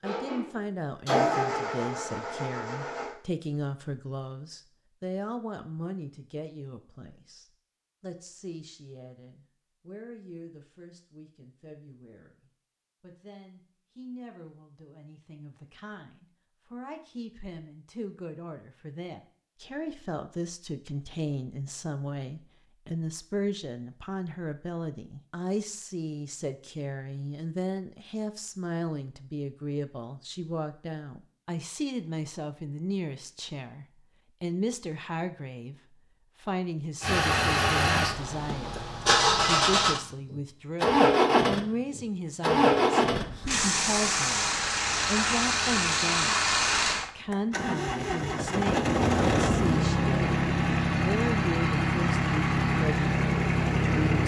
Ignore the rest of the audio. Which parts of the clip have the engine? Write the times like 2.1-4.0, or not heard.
0.0-3.1, 37.0-54.2.